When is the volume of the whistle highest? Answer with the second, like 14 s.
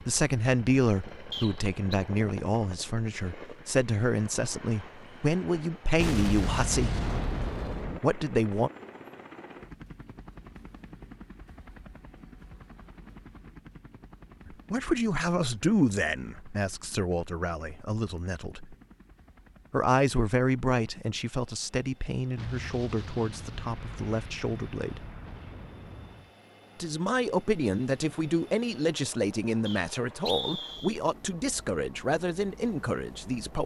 30 s.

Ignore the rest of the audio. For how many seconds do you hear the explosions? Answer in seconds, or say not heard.
6 s.